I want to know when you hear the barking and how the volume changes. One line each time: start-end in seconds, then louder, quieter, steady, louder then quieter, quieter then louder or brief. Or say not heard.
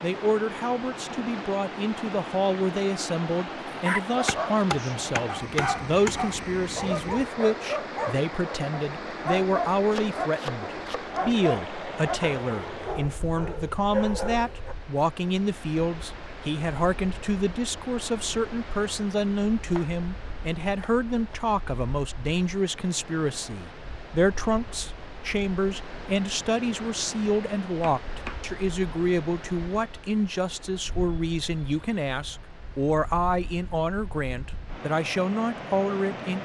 3.8-14.8 steady.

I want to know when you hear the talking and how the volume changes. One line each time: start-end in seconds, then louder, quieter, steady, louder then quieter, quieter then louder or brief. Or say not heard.
0.0-36.4 steady.